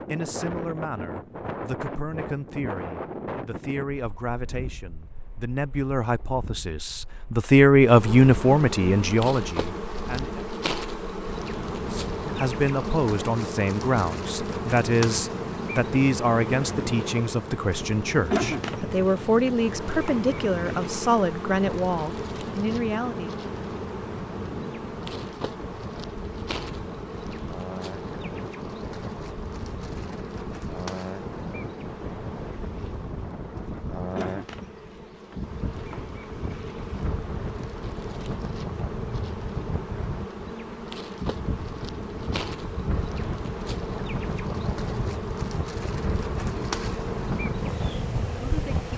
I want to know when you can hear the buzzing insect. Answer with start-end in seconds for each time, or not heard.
7.8-48.9.